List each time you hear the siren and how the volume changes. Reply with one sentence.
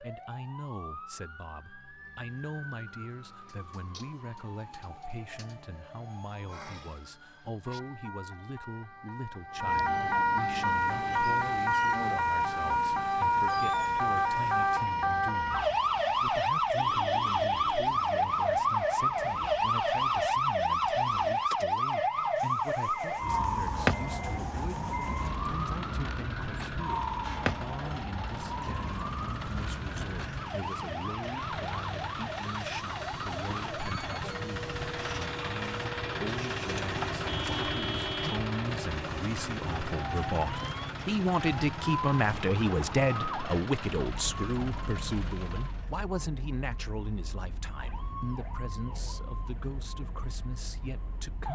The siren can be heard from 0.0 to 51.5 s, getting louder then quieter.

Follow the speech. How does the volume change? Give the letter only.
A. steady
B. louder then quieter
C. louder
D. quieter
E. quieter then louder
C.